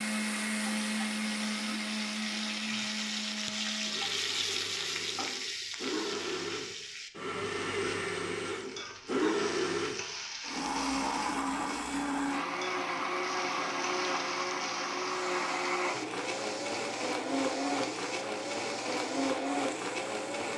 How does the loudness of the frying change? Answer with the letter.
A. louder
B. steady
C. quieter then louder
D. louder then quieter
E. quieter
E.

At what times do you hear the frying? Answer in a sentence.
You can hear the frying from 0.0 to 20.5 s.